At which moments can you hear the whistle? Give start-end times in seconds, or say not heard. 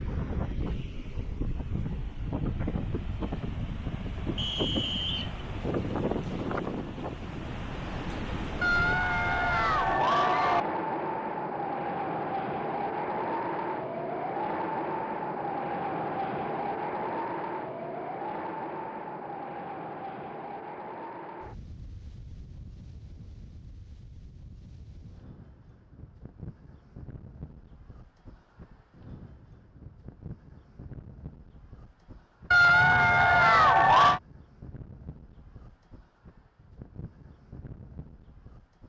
4.3-5.4.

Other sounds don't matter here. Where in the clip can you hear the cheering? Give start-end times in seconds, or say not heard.
8.6-10.7, 32.5-34.2.